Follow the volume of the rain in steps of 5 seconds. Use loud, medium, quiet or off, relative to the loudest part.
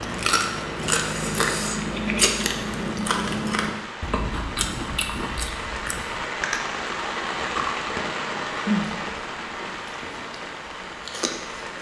medium, loud, medium.